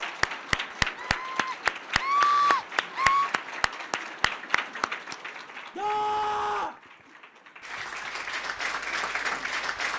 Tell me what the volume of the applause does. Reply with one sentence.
The volume of the applause goes down, then up.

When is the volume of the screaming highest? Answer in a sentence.
The volume of the screaming peaks at 2 seconds.